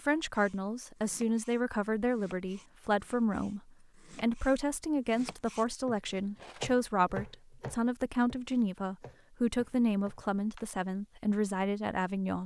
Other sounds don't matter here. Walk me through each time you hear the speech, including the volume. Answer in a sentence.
You can hear the speech from 0.0 to 12.4 s, at a steady volume.